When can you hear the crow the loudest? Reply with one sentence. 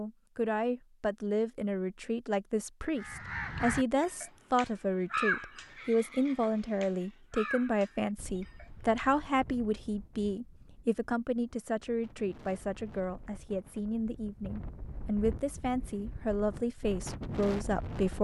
The loudest moment of the crow is at 5 seconds.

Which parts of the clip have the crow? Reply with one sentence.
The crow can be heard from 3.0 to 9.1 s.